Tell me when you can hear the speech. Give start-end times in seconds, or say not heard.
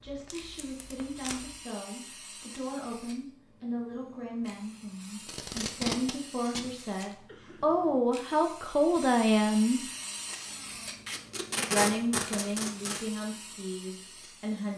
0.0-9.8, 11.7-14.7.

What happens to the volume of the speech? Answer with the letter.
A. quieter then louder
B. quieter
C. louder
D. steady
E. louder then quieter
E.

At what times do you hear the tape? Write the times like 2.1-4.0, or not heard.
0.1-1.6, 5.2-7.2, 11.1-13.1.